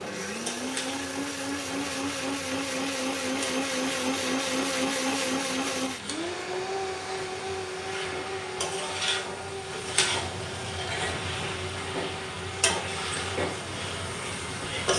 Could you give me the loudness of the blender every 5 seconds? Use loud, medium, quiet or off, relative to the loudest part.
loud, loud, medium.